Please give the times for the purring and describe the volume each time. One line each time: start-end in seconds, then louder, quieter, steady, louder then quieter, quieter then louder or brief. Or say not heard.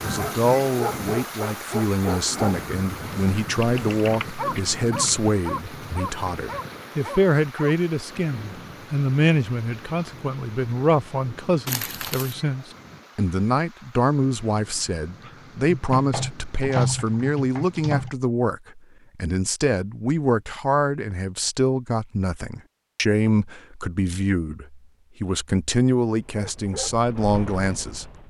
not heard.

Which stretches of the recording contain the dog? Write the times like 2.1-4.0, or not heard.
0.1-7.8, 26.1-28.2.